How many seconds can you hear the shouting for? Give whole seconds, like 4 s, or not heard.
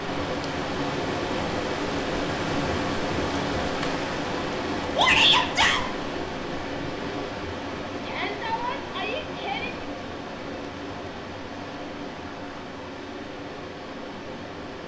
3 s.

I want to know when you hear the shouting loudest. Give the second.
5 s.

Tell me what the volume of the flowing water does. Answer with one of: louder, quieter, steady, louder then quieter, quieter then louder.
quieter.